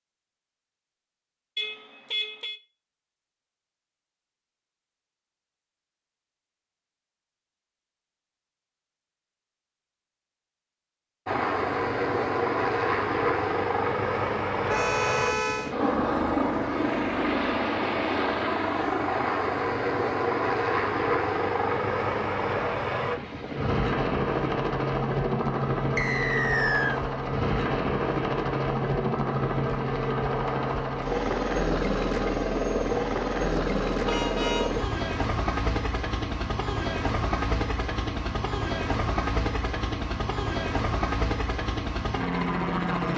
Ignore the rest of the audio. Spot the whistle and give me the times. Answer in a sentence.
The whistle can be heard from 25.9 to 27.0 s.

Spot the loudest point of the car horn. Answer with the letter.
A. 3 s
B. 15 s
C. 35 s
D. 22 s
B.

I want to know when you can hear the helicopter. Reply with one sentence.
The helicopter can be heard from 11.2 to 43.1 s.